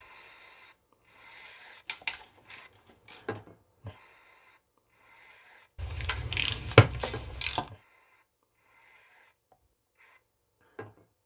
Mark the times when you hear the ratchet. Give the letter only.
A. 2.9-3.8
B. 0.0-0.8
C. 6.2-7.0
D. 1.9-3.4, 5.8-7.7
D.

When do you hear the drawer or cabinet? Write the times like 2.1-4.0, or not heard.
6.2-7.0.